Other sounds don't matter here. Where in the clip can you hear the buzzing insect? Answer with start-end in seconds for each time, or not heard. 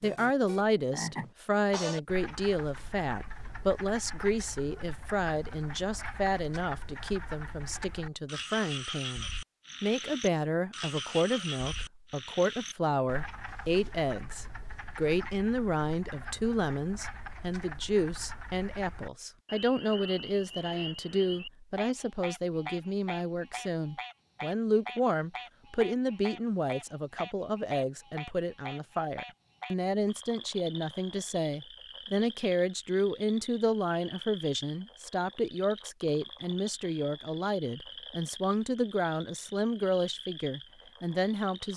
not heard.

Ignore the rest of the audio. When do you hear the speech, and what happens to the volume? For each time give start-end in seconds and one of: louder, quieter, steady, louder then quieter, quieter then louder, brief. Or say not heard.
0.0-41.7 steady.